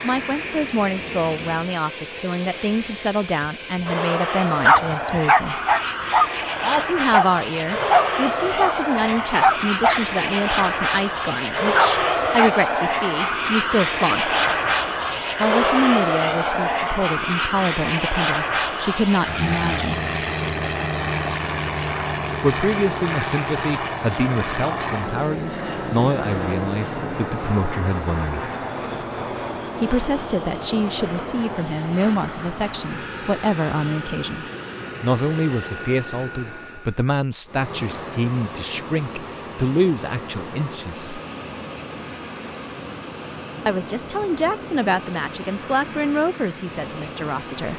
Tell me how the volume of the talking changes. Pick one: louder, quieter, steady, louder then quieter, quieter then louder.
steady.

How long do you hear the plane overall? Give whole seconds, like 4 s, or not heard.
48 s.